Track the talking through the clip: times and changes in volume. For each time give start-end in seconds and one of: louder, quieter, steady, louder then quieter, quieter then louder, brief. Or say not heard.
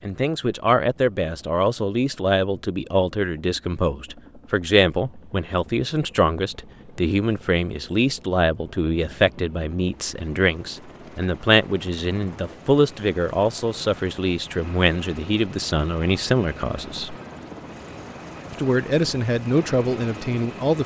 0.0-17.1 steady
18.5-20.8 brief.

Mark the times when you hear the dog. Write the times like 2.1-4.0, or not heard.
not heard.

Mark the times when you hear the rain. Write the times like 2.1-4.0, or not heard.
not heard.